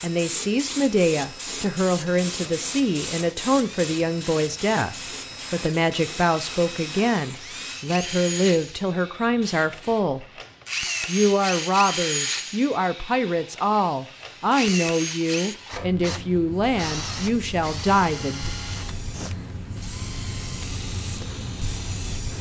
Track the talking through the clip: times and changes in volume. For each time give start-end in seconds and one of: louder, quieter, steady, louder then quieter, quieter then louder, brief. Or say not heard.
0.0-10.2 steady
11.1-18.5 steady.